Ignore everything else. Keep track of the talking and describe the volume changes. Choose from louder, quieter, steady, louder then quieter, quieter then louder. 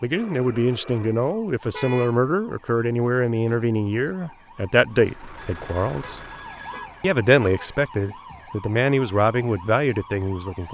steady.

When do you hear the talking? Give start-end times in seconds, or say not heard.
0.0-6.2, 7.0-10.6.